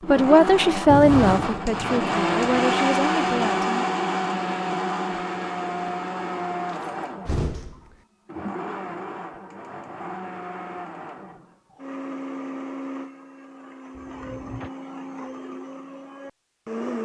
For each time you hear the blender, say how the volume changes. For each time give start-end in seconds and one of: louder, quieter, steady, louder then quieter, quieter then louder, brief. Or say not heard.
0.0-16.9 quieter.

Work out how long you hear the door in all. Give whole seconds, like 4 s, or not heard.
3 s.